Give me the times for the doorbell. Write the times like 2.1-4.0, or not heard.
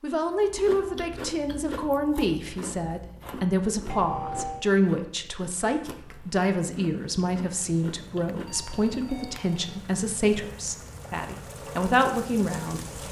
3.9-4.7, 8.2-9.6.